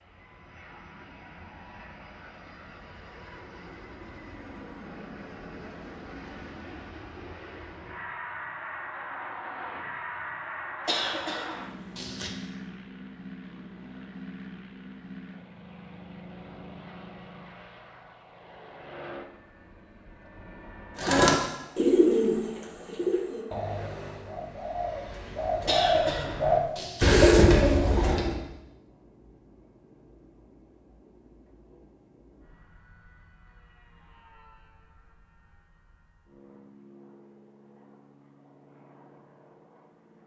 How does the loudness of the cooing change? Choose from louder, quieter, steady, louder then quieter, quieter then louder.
quieter then louder.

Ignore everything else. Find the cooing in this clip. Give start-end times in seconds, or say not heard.
20.9-28.4.